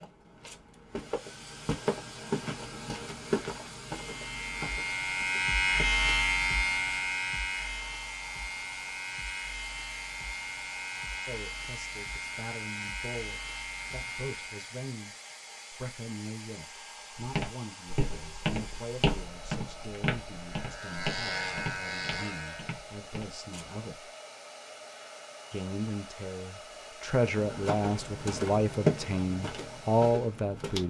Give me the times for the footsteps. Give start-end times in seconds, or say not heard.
0.0-5.8, 17.2-23.9, 27.2-30.8.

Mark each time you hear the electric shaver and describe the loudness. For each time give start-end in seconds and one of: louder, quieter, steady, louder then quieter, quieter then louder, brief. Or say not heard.
4.0-14.8 quieter
20.6-22.8 brief.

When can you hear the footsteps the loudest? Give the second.
29 s.